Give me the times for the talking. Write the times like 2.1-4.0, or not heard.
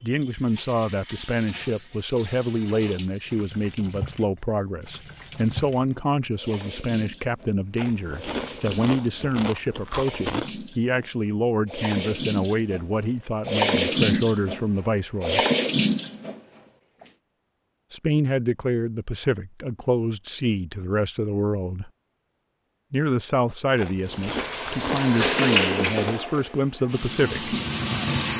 0.0-15.4, 17.9-21.9, 22.9-27.6.